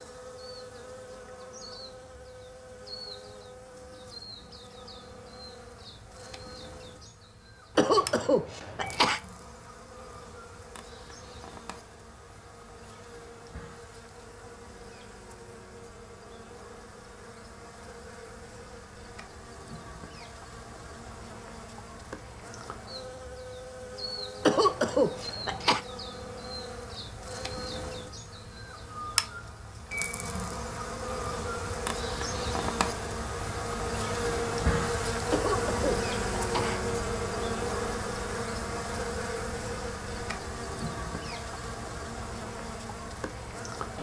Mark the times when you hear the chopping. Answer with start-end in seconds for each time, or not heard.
not heard.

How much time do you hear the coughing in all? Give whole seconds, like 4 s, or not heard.
4 s.